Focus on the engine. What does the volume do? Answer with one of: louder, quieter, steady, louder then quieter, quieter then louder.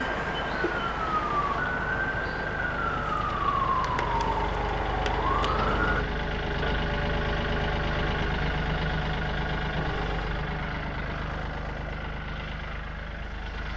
louder then quieter.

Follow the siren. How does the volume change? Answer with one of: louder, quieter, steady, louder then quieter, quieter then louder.
steady.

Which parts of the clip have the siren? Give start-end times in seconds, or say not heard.
0.0-6.0.